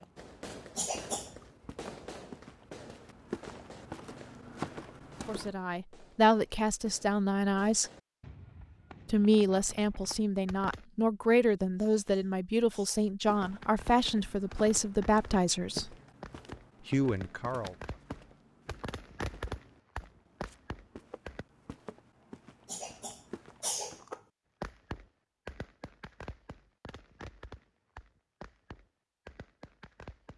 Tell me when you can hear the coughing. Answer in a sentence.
You can hear the coughing from 0.8 to 1.4 s, from 11.8 to 13.1 s and from 22.6 to 24.2 s.